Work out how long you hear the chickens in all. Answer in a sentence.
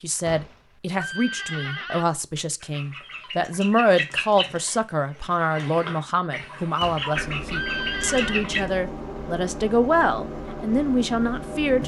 You can hear the chickens for 6 seconds altogether.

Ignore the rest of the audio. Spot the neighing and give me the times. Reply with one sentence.
The neighing can be heard from 0.2 to 2.0 s and from 6.8 to 8.5 s.